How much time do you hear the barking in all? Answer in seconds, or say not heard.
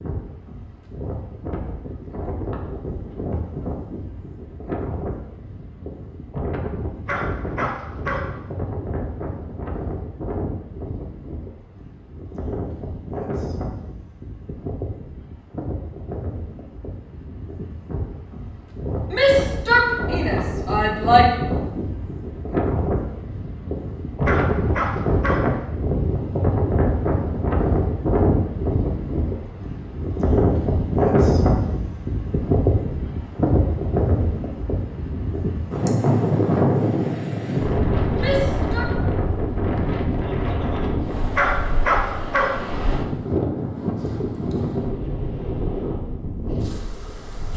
4 s.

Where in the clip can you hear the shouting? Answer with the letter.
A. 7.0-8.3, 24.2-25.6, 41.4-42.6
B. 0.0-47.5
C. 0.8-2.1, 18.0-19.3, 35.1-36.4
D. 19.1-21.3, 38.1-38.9
D.